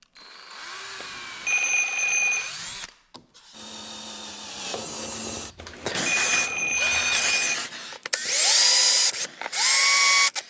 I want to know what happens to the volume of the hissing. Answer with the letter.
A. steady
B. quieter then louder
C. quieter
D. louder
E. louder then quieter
C.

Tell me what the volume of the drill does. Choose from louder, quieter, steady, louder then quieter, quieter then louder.
louder.